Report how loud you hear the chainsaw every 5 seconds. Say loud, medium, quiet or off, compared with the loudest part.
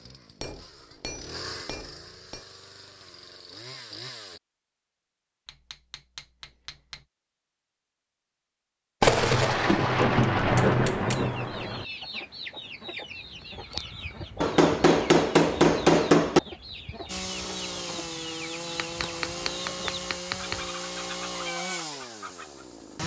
medium, off, off, loud, loud.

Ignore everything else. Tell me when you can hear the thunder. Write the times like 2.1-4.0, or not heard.
9.0-11.8.